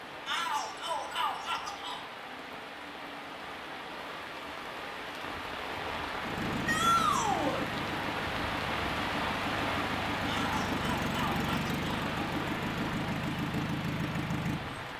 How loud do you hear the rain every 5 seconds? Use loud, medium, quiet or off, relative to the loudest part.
medium, loud, loud.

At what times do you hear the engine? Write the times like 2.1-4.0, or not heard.
6.2-14.9.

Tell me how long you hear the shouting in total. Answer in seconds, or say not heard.
4 s.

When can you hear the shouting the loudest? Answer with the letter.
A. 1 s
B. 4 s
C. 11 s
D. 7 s
D.